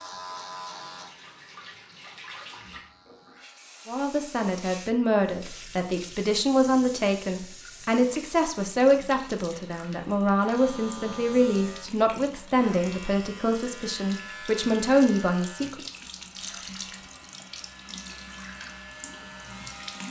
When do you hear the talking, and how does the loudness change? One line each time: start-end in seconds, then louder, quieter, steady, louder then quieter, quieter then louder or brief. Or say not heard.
3.9-15.8 steady.